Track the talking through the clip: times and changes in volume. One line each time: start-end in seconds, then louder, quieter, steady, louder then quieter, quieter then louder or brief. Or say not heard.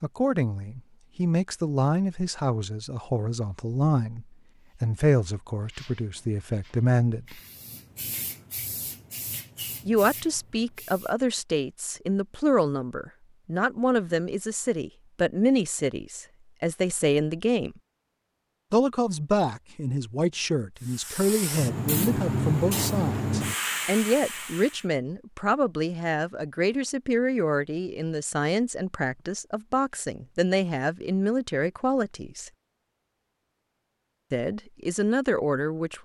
0.0-7.4 steady
9.8-17.8 steady
18.7-32.5 steady
34.3-35.9 brief.